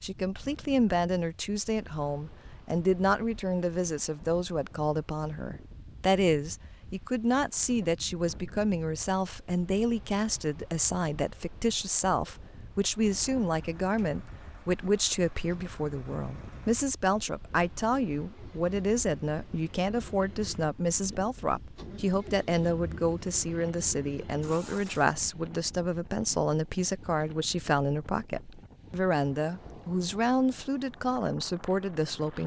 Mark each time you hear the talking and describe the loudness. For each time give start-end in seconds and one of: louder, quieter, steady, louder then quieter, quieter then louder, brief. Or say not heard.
0.0-32.4 steady.